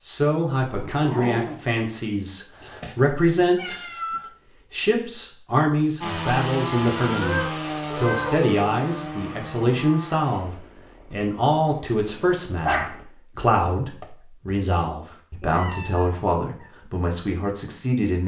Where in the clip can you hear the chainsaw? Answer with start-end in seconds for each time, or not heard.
6.0-13.1.